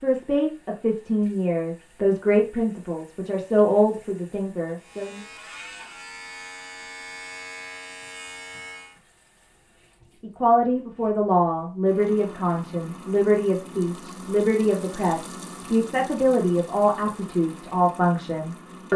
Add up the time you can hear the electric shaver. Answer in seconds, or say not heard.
4 s.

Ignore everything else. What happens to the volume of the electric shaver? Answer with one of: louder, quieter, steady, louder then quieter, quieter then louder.
steady.